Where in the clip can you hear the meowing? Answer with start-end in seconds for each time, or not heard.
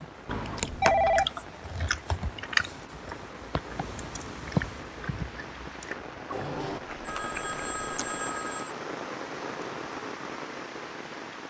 not heard.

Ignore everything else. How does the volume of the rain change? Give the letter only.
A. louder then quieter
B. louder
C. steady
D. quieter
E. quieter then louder
B.